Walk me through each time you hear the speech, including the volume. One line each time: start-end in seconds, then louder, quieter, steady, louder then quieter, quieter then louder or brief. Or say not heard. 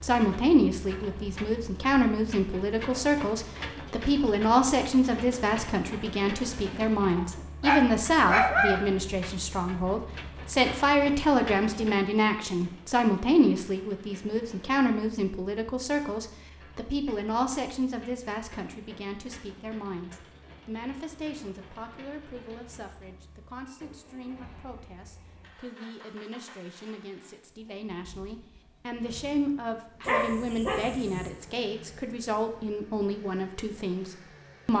0.0-34.7 quieter then louder.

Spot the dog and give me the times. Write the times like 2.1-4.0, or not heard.
7.2-8.8, 30.0-31.3.